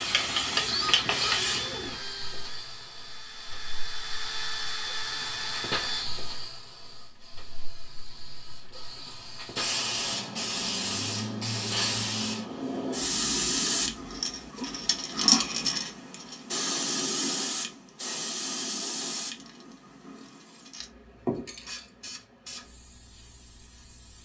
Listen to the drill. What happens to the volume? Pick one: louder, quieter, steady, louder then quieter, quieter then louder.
quieter then louder.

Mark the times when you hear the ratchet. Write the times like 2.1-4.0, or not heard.
not heard.